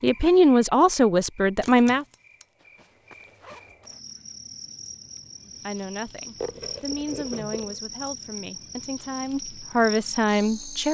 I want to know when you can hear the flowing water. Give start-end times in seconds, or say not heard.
not heard.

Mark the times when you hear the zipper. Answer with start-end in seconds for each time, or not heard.
2.5-3.8, 6.4-7.8.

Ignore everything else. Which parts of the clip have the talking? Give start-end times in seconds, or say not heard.
0.0-2.0, 5.5-10.9.